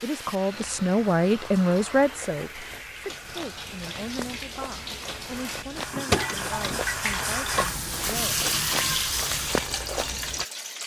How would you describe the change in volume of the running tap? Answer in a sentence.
The volume of the running tap goes up.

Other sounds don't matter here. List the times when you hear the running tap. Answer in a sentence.
The running tap can be heard from 0.0 to 10.8 s.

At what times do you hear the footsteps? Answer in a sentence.
You can hear the footsteps from 0.5 to 10.4 s.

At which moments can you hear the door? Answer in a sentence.
You can hear the door from 5.9 to 6.8 s.